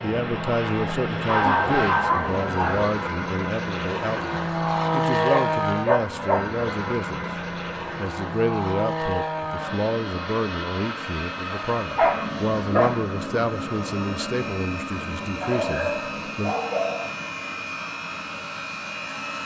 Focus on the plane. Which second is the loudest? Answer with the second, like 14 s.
5 s.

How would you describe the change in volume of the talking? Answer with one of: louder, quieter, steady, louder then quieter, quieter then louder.
steady.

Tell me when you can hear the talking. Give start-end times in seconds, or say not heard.
0.0-16.6.